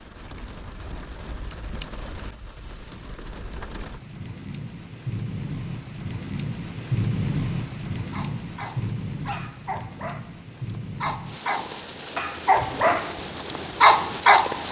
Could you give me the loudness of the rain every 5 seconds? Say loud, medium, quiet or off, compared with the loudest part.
medium, loud, medium.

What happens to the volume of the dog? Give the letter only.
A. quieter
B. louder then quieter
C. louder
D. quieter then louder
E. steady
C.